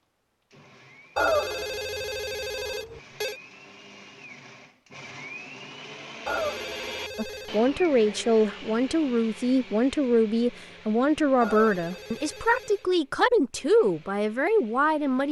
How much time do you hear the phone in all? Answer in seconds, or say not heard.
5 s.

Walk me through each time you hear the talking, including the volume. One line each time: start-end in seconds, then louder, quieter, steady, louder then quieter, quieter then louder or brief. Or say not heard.
7.2-15.2 steady.